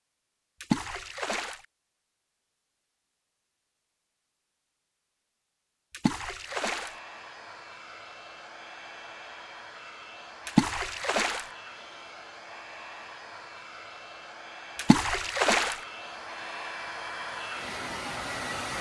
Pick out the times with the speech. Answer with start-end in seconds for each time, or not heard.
not heard.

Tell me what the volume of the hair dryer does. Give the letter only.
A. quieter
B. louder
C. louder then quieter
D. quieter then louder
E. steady
B.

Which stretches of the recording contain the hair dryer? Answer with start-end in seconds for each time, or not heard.
6.4-18.7.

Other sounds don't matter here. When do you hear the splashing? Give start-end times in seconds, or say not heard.
0.6-1.6, 5.9-6.9, 10.4-11.4, 14.8-15.8.